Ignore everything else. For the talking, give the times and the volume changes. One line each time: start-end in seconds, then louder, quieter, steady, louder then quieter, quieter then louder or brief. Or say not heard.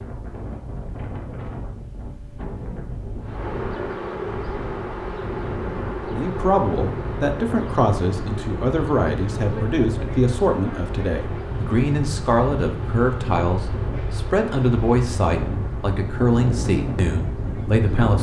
6.1-18.1 steady.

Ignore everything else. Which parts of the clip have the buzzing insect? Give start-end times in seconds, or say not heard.
3.2-17.9.